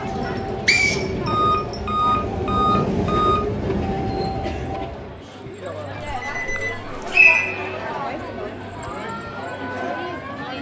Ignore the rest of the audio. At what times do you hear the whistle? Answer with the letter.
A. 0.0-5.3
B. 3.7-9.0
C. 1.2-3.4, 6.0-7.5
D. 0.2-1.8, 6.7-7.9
D.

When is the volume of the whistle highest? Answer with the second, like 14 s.
7 s.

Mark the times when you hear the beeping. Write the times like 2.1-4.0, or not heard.
1.2-3.4, 6.0-7.5.